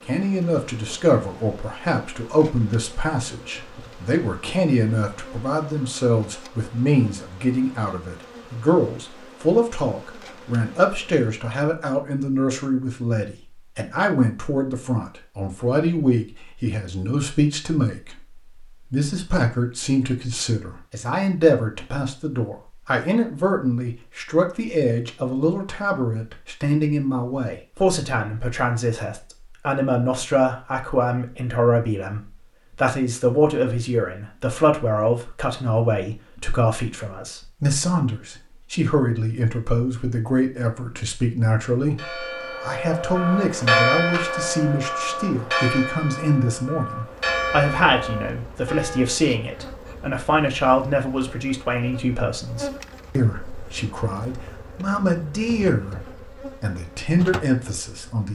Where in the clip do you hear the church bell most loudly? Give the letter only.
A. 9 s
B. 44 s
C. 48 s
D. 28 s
B.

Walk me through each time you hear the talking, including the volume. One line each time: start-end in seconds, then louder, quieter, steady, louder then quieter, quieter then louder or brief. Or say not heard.
0.1-56.0 steady
56.6-58.3 brief.